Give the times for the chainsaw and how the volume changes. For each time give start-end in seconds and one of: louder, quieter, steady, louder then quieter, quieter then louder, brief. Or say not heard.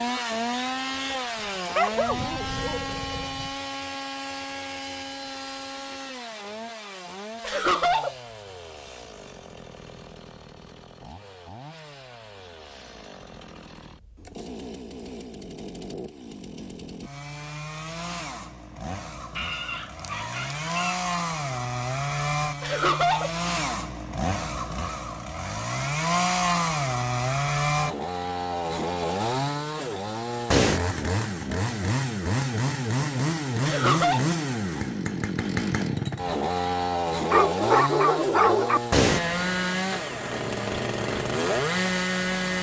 0.0-42.5 quieter then louder.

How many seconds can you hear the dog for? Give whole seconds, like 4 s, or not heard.
5 s.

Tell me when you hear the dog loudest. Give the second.
38 s.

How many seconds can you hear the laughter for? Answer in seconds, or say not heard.
2 s.